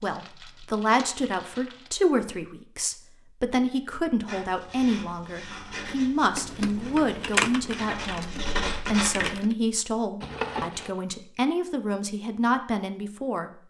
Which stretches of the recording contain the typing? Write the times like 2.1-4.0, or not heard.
6.3-9.6.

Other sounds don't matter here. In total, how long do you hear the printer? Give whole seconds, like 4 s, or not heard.
not heard.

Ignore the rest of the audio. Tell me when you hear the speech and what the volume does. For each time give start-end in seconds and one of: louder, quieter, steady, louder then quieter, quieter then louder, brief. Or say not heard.
0.0-13.6 steady.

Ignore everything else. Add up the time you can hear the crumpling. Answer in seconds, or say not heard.
3 s.